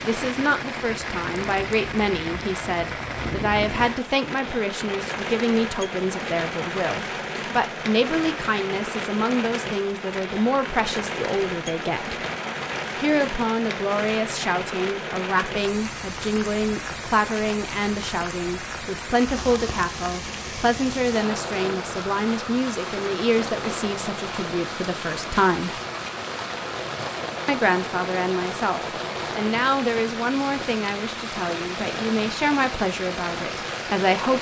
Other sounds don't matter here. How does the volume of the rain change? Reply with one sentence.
The volume of the rain stays about the same.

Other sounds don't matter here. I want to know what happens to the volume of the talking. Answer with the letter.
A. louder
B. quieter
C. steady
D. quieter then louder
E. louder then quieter
C.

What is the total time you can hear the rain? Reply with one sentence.
You can hear the rain for 34 seconds altogether.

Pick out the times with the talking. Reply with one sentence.
The talking can be heard from 0.0 to 12.2 s, from 12.9 to 25.8 s and from 27.4 to 34.3 s.